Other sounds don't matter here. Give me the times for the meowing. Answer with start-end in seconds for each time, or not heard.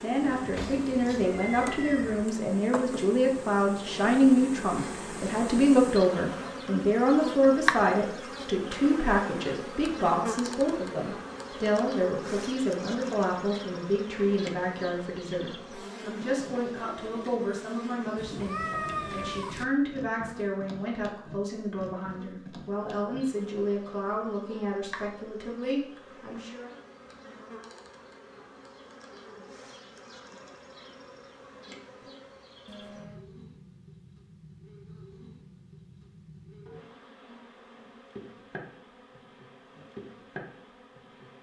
0.2-2.2, 18.1-19.6, 32.6-33.3.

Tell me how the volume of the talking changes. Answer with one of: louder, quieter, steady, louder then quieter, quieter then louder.
quieter.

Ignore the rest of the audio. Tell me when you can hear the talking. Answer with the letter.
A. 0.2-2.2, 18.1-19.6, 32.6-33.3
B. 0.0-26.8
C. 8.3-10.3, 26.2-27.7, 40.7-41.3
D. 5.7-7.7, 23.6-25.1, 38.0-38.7
B.